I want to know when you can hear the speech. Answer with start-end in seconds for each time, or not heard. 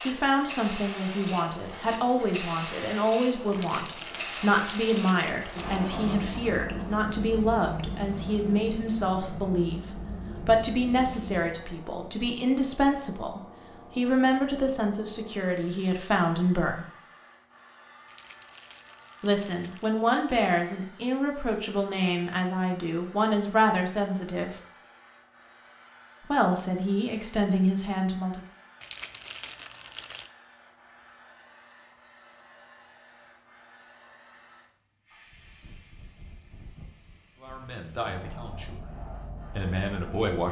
0.1-16.9, 19.2-24.6, 26.3-28.4, 37.4-38.9, 39.5-40.4.